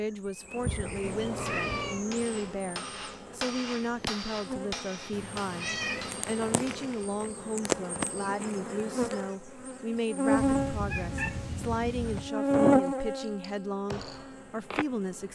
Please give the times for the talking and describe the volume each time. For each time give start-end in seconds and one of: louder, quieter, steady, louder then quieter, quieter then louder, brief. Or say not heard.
0.0-15.3 steady.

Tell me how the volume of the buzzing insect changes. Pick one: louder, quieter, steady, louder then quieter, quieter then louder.
louder.